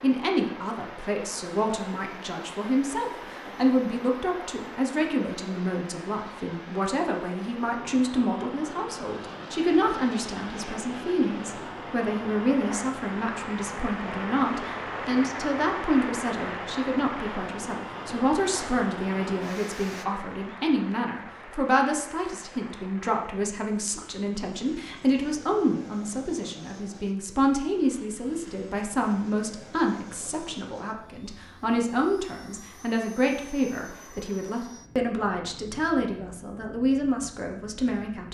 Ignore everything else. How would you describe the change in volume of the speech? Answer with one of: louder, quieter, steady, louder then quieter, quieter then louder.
steady.